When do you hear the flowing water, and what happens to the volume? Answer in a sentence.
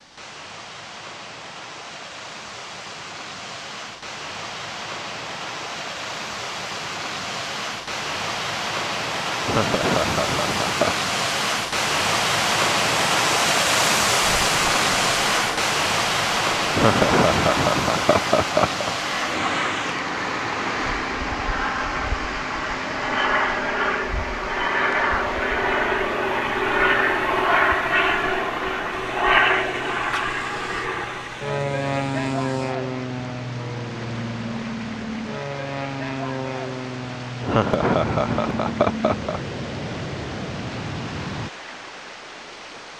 You can hear the flowing water from 0.0 to 42.9 s, getting louder then quieter.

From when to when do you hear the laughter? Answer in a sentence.
The laughter can be heard from 9.4 to 10.9 s, from 16.7 to 18.9 s and from 37.4 to 39.4 s.